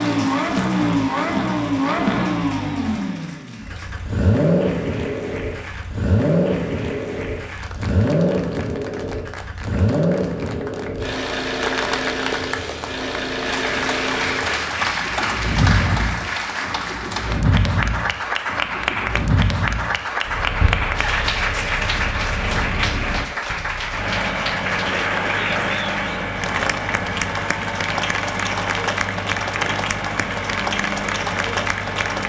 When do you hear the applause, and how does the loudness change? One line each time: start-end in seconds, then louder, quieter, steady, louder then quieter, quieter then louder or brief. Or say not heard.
0.0-32.2 louder.